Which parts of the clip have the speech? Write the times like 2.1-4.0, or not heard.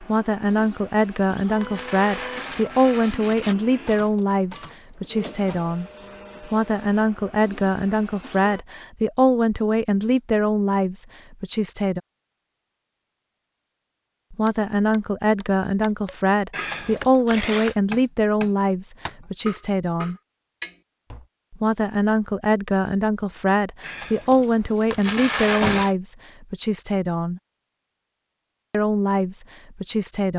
0.0-12.0, 14.3-20.1, 21.5-27.4, 28.7-30.3.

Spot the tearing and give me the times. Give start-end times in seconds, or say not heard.
1.6-3.5, 17.1-17.8, 24.9-25.9.